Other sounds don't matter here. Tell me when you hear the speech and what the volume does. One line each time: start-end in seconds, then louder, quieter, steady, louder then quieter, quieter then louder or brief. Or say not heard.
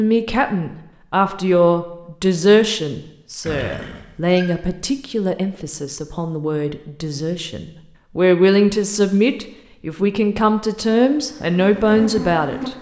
0.0-12.7 quieter then louder.